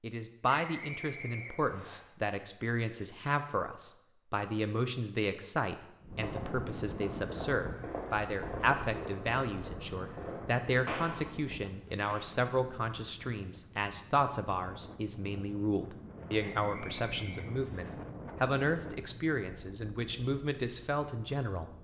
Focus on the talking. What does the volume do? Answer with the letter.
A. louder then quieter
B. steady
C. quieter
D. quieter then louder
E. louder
B.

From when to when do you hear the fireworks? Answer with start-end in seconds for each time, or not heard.
6.2-12.4.